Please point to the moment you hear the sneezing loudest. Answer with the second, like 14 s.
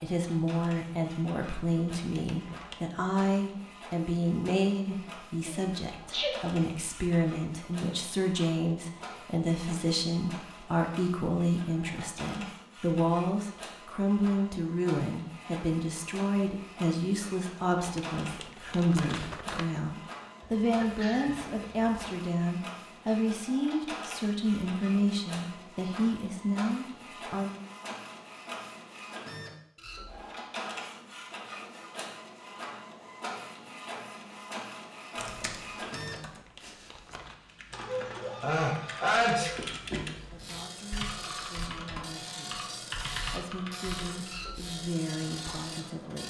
39 s.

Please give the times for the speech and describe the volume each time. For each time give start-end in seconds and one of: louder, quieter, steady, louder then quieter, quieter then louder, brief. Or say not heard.
0.0-27.6 steady
40.2-46.2 louder.